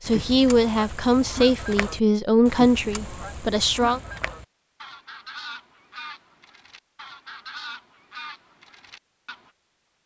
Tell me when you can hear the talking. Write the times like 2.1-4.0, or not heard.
0.0-4.0.